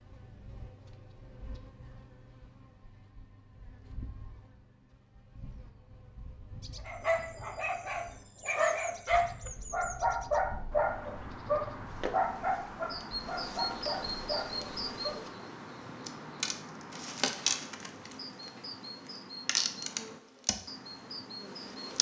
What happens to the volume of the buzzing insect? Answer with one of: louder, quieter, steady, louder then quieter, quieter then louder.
louder.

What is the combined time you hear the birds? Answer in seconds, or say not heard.
15 s.